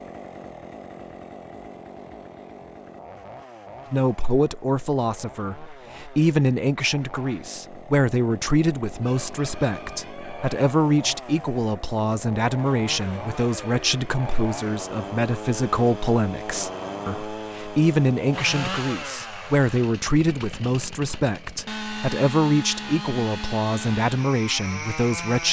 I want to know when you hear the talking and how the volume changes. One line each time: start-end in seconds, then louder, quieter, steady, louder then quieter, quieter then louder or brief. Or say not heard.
3.9-25.4 steady.